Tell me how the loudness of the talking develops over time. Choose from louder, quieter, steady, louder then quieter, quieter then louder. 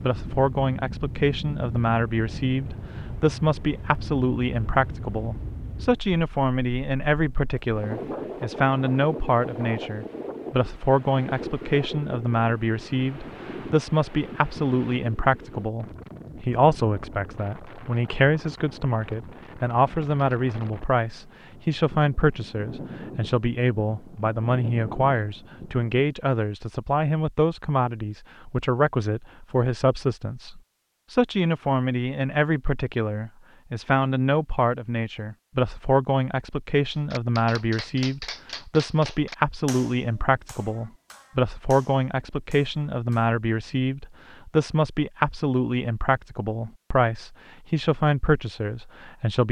steady.